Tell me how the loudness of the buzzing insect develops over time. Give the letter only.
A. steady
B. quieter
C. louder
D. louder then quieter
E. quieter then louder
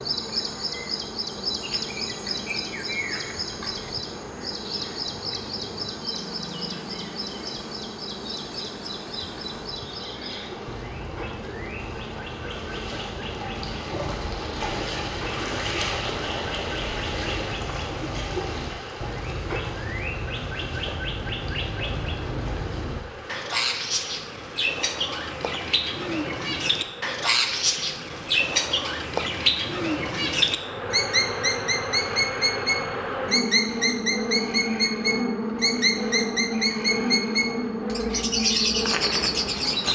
C.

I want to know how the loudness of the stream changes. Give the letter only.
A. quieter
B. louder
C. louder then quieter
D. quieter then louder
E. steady
C.